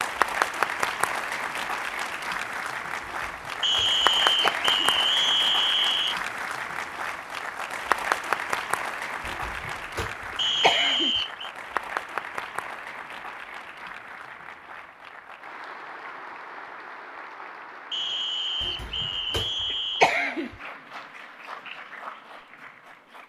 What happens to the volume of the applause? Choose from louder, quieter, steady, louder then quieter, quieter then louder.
quieter.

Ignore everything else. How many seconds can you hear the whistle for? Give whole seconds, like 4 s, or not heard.
6 s.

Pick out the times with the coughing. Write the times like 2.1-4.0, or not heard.
3.2-4.8, 9.2-11.2, 18.6-20.6.